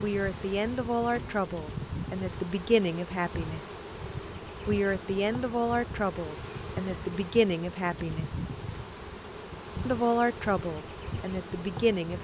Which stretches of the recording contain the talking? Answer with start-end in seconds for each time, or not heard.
0.0-3.6, 4.7-8.2, 9.8-12.1.